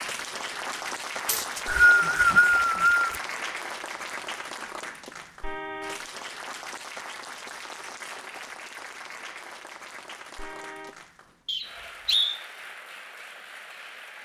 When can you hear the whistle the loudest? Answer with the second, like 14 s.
2 s.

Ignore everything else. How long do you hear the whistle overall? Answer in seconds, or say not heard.
3 s.